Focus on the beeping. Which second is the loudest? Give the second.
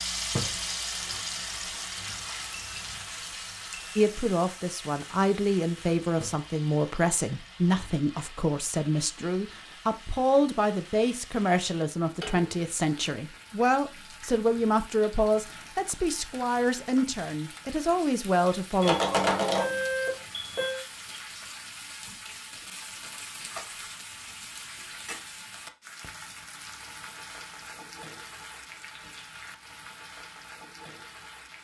19 s.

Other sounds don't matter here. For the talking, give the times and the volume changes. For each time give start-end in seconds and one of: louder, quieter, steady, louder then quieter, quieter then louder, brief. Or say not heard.
4.0-18.9 steady.